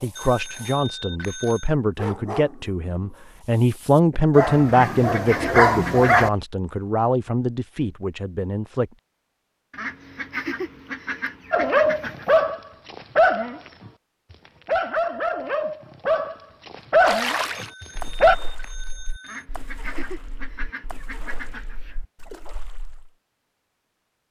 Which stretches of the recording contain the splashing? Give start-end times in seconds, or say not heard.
17.0-23.1.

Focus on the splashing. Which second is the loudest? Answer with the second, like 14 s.
17 s.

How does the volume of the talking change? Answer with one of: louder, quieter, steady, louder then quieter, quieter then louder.
louder then quieter.